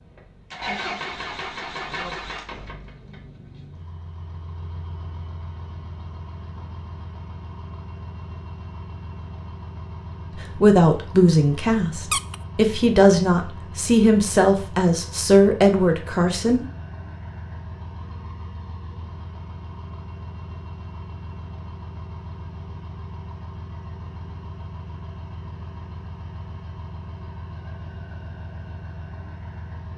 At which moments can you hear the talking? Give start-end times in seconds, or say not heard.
10.3-16.6.